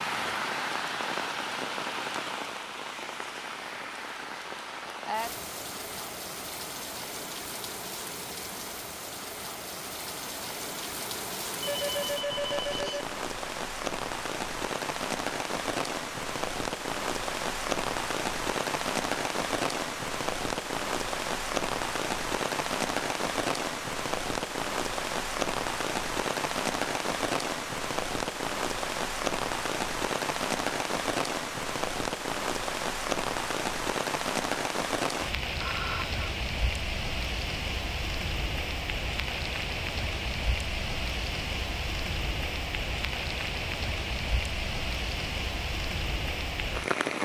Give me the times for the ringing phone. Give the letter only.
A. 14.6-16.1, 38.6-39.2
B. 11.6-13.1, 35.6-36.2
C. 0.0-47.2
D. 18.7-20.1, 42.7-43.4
B.